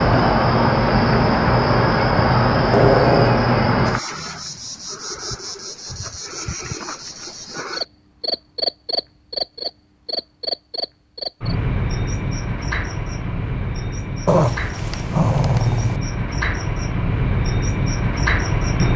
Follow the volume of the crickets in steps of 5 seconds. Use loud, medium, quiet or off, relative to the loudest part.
loud, medium, medium, medium.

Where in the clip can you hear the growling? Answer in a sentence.
The growling can be heard from 2.6 to 3.4 s and from 14.2 to 16.0 s.